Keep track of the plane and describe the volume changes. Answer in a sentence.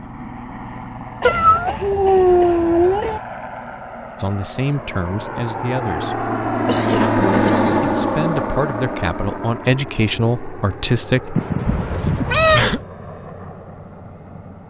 The loudness of the plane goes up, then down.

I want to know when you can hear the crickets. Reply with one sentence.
The crickets can't be heard in this clip.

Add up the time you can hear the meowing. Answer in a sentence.
You can hear the meowing for 3 seconds altogether.